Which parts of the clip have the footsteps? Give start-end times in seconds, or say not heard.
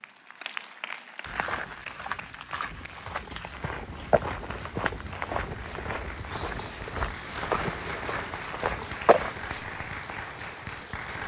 1.2-9.6.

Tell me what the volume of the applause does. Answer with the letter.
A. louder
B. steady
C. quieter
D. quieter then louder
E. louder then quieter
D.